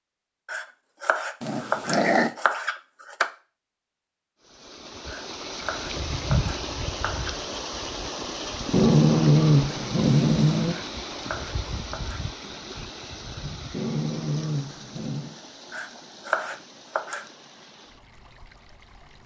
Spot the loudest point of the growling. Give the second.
9 s.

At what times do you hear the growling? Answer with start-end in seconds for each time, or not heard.
1.4-2.3, 8.7-10.8, 13.7-15.3.